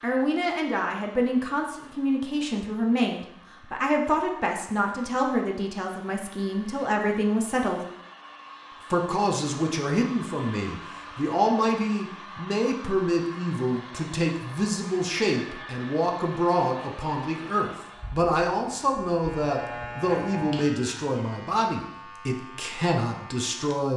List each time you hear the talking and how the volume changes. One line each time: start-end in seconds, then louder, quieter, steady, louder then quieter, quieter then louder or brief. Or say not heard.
0.0-7.8 steady
8.9-23.9 steady.